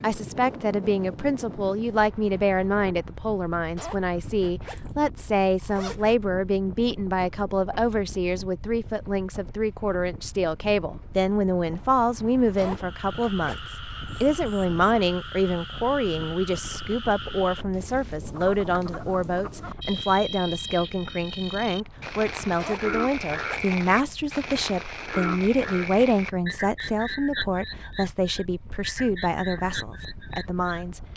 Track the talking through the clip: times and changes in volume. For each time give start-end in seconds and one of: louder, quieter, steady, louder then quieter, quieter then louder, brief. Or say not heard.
0.0-31.0 steady.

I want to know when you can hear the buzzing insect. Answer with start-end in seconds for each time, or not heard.
not heard.